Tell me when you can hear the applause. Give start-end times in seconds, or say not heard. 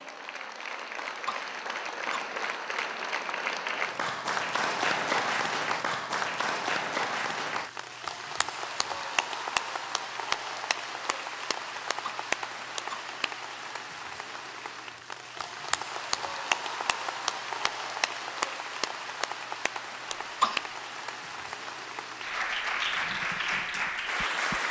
0.0-24.6.